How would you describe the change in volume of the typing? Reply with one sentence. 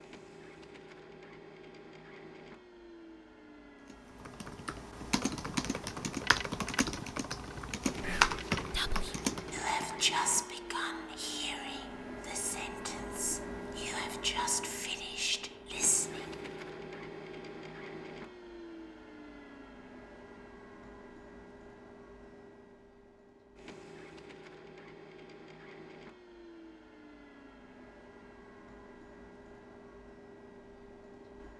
The volume of the typing goes up, then down.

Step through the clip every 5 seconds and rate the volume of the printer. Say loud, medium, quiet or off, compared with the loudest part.
medium, loud, loud, loud, medium, medium, medium.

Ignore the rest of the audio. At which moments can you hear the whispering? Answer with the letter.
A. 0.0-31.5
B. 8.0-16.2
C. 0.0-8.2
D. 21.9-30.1
B.